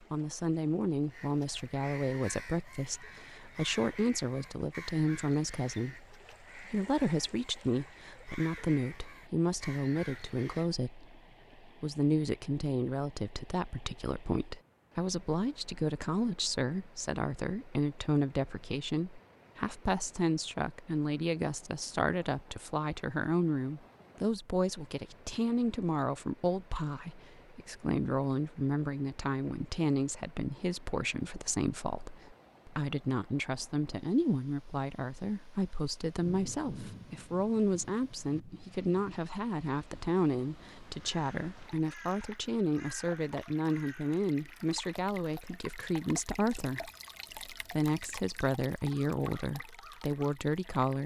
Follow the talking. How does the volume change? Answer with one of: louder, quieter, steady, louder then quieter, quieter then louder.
steady.